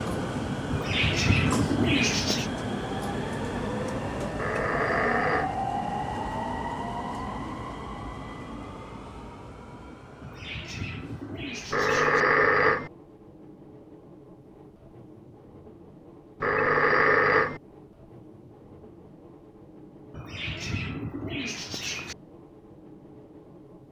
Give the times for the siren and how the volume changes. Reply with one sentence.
The siren can't be heard in this clip.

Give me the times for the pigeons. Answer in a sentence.
You can hear the pigeons from 0.7 to 2.5 s, from 10.2 to 12.2 s and from 20.1 to 22.1 s.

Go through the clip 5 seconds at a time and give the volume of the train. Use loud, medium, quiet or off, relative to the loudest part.
loud, loud, quiet, quiet, quiet.